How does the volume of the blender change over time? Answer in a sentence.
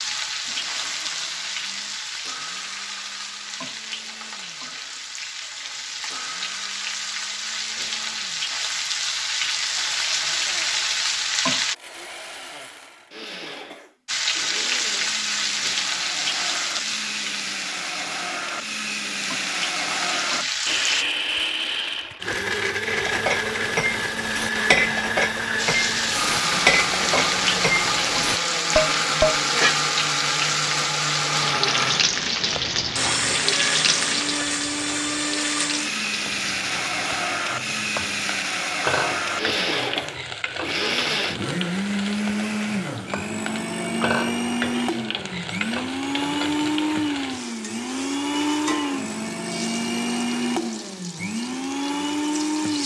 The loudness of the blender goes up.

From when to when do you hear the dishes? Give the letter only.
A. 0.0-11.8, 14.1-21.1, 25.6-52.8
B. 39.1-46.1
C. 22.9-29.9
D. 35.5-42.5
C.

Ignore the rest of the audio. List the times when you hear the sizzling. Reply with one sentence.
You can hear the sizzling from 0.0 to 11.8 s, from 14.1 to 21.1 s and from 25.6 to 52.8 s.